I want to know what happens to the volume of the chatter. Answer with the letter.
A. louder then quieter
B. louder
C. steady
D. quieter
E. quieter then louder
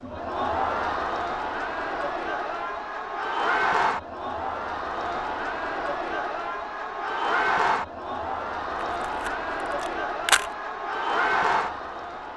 C.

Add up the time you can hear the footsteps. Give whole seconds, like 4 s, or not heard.
not heard.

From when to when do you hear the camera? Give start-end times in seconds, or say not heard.
9.0-10.5.